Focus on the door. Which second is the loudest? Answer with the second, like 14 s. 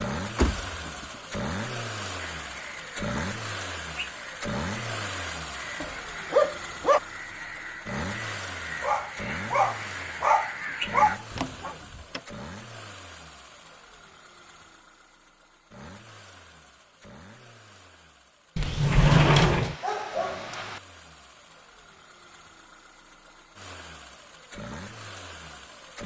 19 s.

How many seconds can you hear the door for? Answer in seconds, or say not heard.
3 s.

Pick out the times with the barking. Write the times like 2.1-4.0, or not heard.
5.8-7.0, 8.8-11.8, 19.5-20.8.